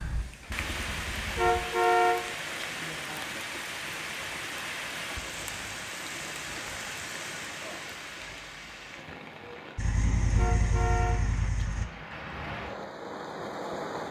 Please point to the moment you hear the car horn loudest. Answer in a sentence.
The volume of the car horn peaks at 2 seconds.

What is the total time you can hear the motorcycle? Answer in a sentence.
You can hear the motorcycle for 4 seconds altogether.